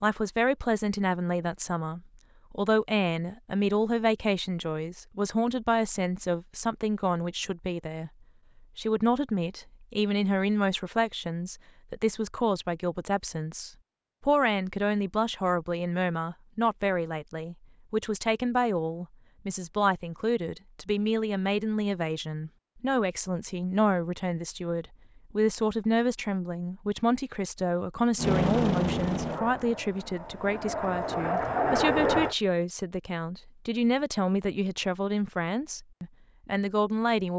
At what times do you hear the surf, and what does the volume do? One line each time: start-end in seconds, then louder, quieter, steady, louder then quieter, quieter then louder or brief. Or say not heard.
not heard.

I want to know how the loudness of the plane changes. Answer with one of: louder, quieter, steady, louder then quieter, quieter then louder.
quieter then louder.